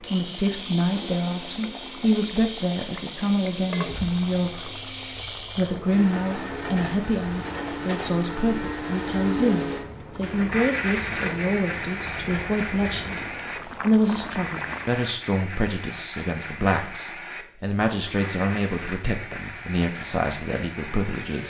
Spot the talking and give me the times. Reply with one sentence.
The talking can be heard from 0.0 to 4.8 s and from 5.5 to 21.4 s.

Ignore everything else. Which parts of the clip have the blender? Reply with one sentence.
You can hear the blender from 0.0 to 21.4 s.